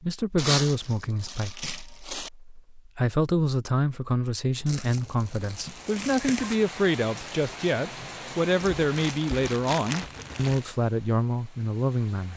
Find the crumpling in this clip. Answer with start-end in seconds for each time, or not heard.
0.3-2.3, 4.7-6.6, 8.6-10.7.